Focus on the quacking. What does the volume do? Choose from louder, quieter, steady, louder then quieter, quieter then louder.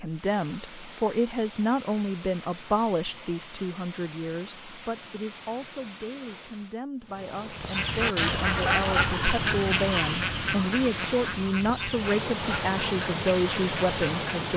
quieter.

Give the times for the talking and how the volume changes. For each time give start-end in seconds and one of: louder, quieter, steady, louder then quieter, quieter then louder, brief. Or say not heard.
0.0-14.5 quieter then louder.